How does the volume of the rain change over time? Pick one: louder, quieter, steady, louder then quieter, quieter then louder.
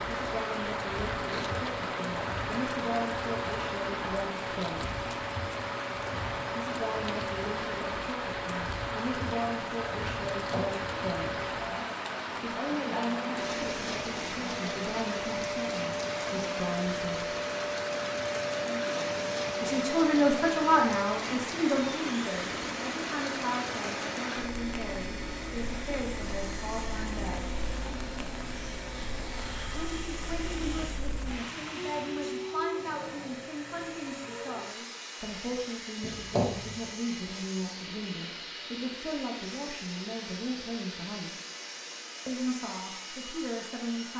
quieter.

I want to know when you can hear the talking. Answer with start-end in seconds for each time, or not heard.
0.1-5.0, 6.5-11.4, 12.4-17.4, 19.6-27.4, 29.7-41.4, 42.2-44.1.